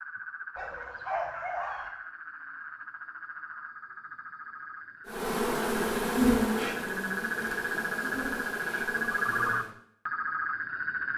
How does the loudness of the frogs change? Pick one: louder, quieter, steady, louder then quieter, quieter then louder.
louder.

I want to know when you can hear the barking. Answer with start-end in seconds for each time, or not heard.
0.6-1.9.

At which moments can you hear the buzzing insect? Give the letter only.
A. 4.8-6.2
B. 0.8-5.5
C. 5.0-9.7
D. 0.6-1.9
C.